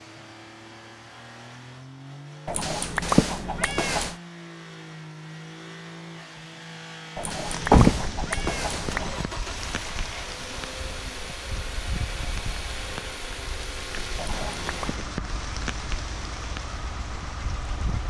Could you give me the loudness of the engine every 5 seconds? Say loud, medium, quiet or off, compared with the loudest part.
medium, loud, loud, loud.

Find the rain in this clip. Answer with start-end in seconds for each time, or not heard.
7.5-18.0.